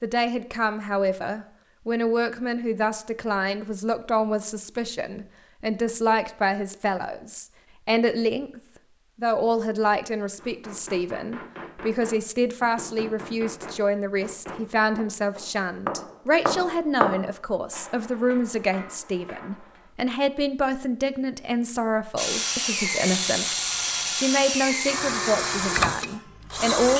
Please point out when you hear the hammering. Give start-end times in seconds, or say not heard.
10.3-19.9.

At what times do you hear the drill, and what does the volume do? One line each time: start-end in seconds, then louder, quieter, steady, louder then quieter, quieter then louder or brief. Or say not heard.
22.1-26.9 steady.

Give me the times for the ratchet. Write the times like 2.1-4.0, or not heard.
not heard.